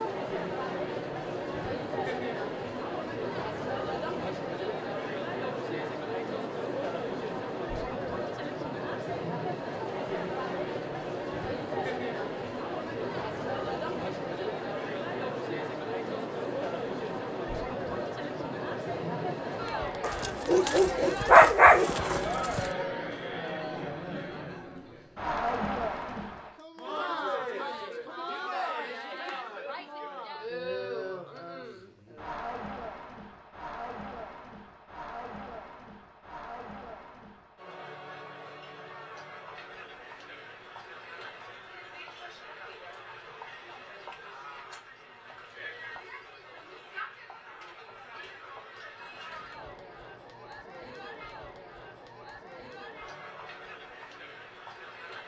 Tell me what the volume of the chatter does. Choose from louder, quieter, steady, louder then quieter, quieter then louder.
quieter.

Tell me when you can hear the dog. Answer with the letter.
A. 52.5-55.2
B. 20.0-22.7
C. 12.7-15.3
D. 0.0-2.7
B.